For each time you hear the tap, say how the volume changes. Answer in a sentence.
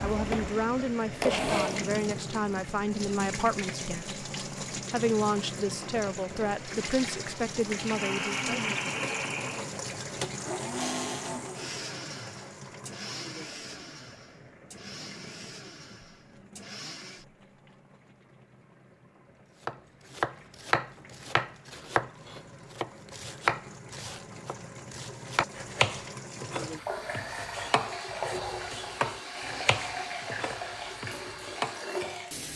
The tap can be heard from 0.0 to 32.5 s, getting quieter then louder.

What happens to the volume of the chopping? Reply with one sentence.
The volume of the chopping goes down.